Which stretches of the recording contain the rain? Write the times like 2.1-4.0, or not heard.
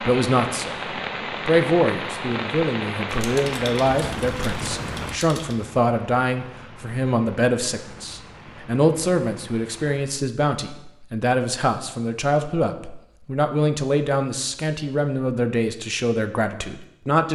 0.0-10.2.